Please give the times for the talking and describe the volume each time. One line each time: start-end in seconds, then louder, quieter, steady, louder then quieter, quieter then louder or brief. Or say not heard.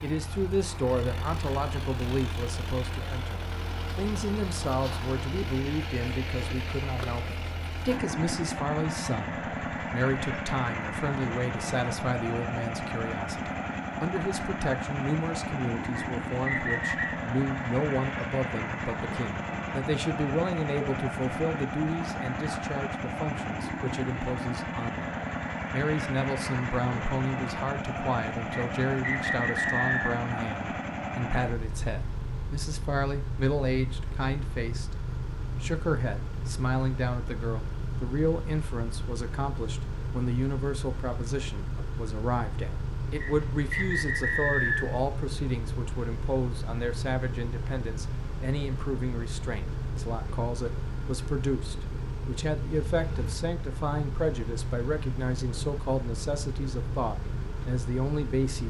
0.0-58.6 steady.